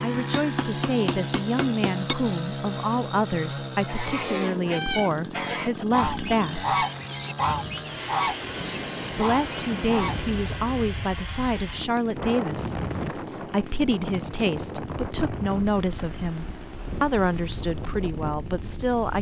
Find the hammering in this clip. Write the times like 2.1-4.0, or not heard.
0.1-2.1.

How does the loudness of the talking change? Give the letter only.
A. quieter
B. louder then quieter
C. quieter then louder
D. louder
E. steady
E.